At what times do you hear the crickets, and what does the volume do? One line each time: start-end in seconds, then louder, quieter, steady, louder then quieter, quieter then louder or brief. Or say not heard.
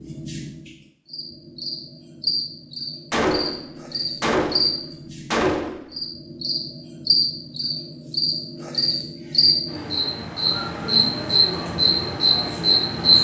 0.0-13.2 louder.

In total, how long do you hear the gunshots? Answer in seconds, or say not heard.
3 s.